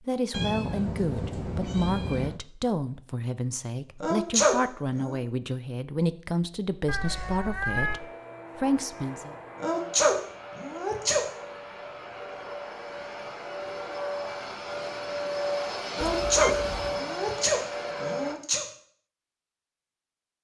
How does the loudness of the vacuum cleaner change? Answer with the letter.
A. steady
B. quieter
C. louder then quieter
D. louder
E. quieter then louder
D.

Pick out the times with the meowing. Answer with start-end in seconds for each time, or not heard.
0.3-2.4, 6.8-8.0, 16.0-17.0.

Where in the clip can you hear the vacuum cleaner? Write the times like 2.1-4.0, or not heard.
7.8-18.4.